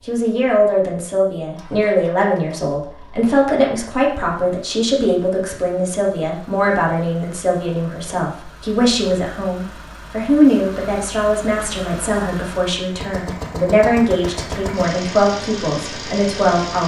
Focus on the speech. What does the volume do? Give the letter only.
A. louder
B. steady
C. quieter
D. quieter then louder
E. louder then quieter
B.